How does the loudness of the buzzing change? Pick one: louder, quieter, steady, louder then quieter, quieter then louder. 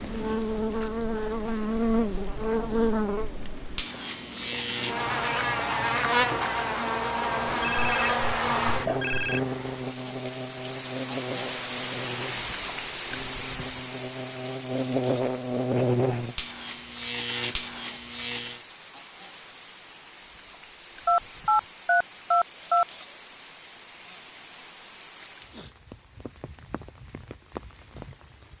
quieter then louder.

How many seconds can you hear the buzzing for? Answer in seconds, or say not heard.
19 s.